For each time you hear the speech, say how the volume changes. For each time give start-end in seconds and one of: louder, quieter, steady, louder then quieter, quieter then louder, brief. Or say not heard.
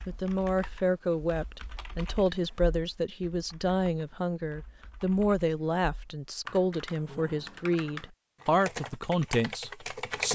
0.1-10.2 steady.